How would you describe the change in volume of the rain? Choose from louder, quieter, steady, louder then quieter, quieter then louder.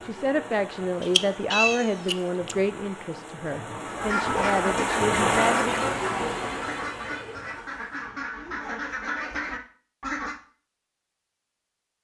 louder then quieter.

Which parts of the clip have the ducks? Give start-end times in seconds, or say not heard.
3.9-10.4.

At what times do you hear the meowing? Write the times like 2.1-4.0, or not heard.
1.0-2.5.